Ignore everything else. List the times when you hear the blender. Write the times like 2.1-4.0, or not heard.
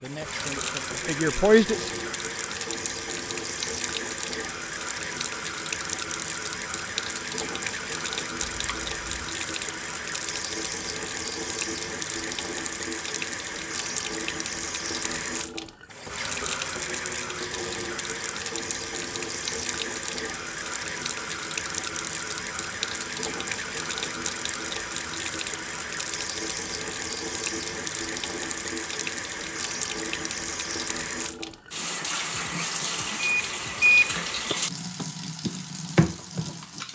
not heard.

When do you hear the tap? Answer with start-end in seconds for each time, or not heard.
0.0-36.8.